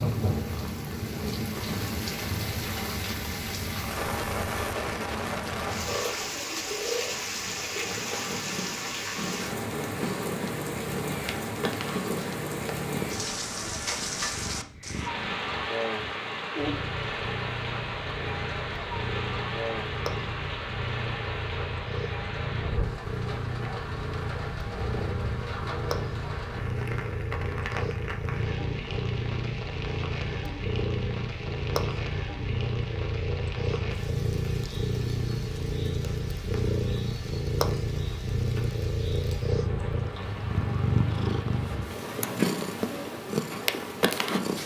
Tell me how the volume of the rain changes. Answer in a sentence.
The loudness of the rain goes down.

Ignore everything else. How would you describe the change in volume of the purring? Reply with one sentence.
The loudness of the purring goes up.